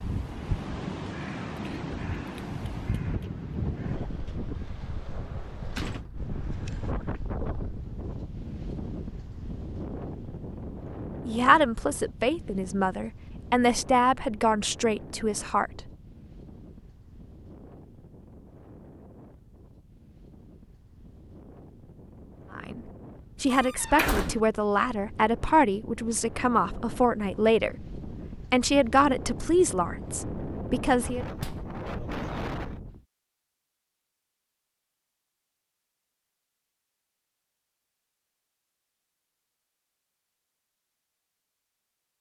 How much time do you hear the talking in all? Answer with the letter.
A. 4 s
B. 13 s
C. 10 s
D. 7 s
B.